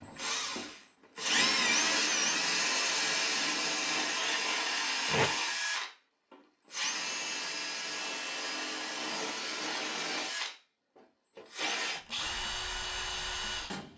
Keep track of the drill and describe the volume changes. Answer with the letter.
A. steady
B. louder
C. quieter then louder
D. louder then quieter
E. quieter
E.